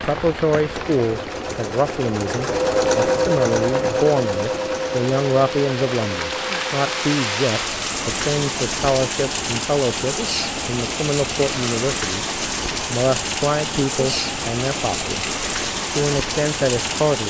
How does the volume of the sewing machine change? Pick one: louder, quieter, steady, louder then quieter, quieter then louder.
quieter.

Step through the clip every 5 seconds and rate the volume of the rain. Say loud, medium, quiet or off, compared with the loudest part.
medium, loud, loud, loud.